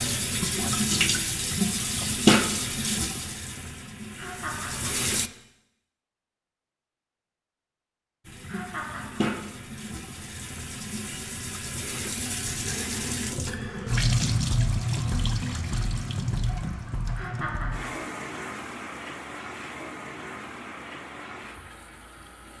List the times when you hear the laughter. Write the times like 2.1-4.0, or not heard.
4.2-5.1, 8.4-9.2, 17.1-18.1.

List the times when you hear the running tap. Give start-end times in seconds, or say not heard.
0.0-5.3, 8.2-22.5.